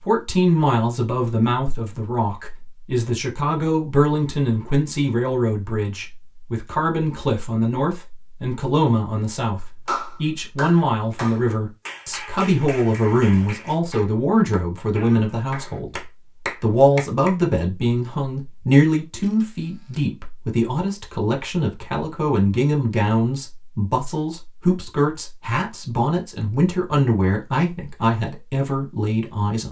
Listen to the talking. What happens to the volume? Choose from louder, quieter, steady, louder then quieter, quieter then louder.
steady.